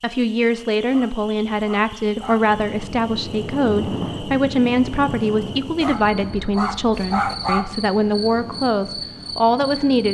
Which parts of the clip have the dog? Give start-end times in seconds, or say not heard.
0.9-2.5, 5.8-7.8.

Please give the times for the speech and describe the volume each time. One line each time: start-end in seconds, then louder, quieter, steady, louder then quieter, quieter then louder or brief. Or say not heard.
0.0-10.0 steady.